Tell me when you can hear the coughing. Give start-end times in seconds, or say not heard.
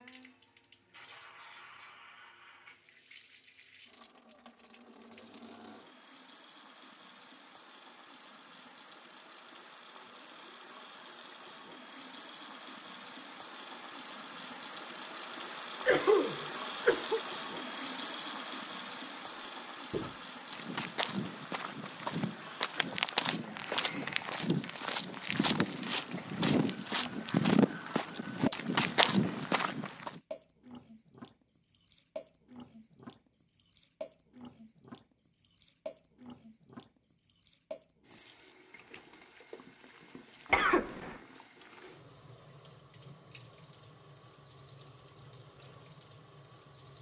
15.8-17.2, 40.5-41.2.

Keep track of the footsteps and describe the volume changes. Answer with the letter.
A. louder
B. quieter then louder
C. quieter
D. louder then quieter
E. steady
A.